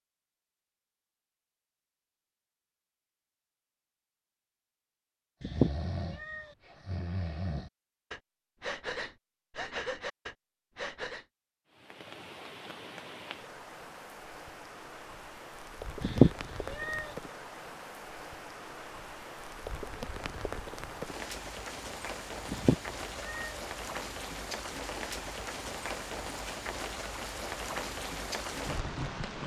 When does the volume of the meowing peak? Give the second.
16 s.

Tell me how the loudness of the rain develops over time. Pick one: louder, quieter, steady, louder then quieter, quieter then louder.
louder.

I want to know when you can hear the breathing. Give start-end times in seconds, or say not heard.
5.5-11.2.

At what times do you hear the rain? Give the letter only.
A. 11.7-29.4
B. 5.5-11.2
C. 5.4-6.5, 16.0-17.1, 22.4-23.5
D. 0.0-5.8
A.